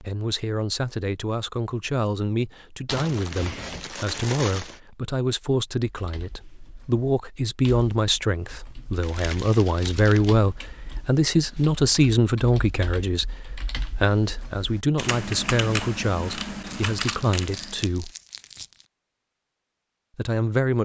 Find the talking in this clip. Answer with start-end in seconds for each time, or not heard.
0.0-18.1, 20.1-20.8.